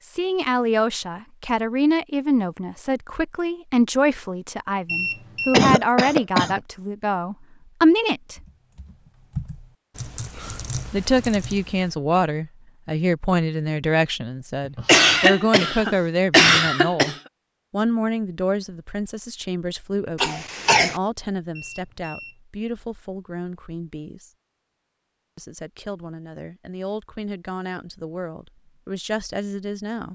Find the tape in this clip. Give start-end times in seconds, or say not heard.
not heard.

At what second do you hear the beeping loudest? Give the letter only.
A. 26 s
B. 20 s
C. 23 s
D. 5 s
D.